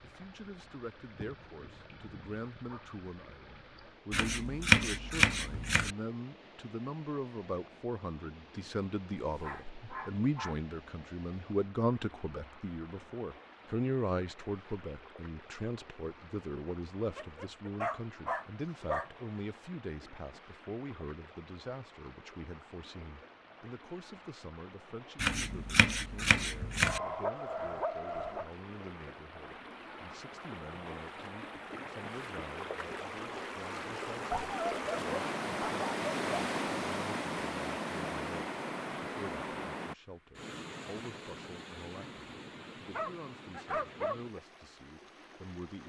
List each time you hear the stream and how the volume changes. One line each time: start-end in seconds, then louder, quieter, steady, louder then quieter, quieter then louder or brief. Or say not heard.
0.0-45.8 louder.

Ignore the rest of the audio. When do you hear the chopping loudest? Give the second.
5 s.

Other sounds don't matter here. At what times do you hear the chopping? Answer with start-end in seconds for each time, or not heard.
4.1-6.0, 25.1-27.0.